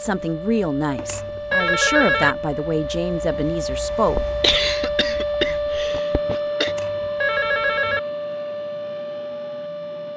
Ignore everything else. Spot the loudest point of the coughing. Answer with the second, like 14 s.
5 s.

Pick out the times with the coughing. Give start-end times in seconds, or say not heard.
4.1-6.8.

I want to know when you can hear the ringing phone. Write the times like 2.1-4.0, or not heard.
0.9-2.4, 6.7-8.0.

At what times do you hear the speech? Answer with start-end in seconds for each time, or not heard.
0.0-4.2.